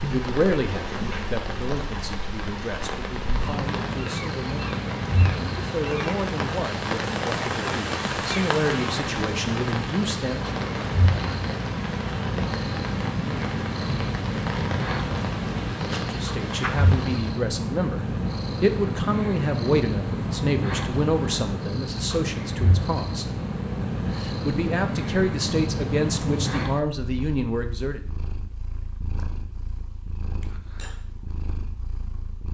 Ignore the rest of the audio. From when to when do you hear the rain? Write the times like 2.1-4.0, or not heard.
0.0-17.4.